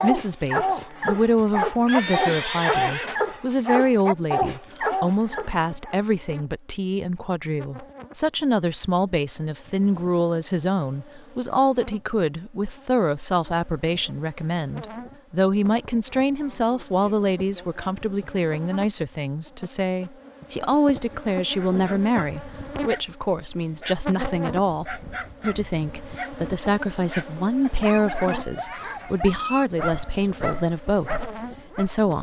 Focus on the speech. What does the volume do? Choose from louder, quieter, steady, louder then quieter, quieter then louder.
steady.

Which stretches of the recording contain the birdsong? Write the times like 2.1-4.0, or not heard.
not heard.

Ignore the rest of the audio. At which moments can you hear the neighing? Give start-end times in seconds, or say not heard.
1.9-3.2.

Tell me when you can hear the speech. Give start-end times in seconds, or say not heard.
0.0-32.1.